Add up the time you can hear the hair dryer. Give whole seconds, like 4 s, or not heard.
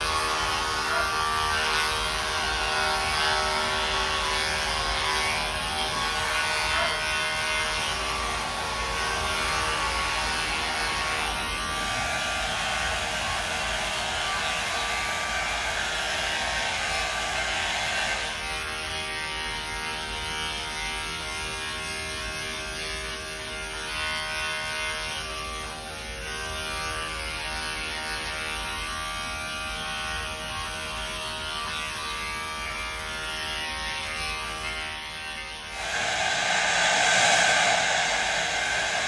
22 s.